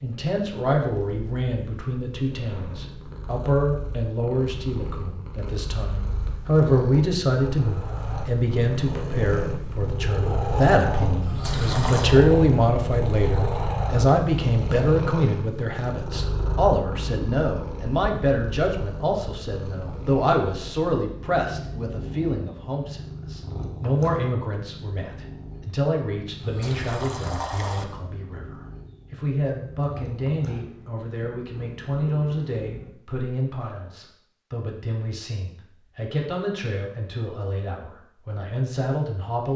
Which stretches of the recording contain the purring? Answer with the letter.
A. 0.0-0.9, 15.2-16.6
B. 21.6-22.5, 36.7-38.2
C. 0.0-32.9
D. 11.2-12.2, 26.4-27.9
C.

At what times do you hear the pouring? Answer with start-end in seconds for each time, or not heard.
11.2-12.2, 26.4-27.9.